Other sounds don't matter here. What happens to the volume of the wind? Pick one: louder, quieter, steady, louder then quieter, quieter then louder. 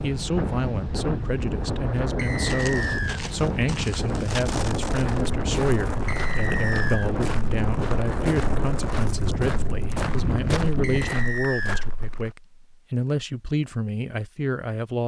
steady.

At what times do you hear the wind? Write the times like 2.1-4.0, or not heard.
0.0-11.3.